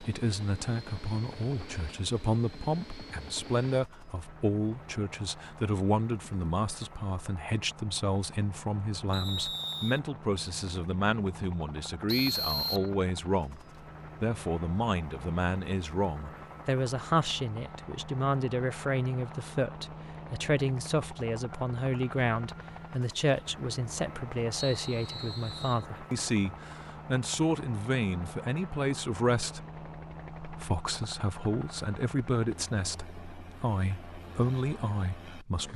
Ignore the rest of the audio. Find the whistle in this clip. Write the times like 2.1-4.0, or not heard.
9.1-10.0, 12.1-12.9, 24.6-25.9.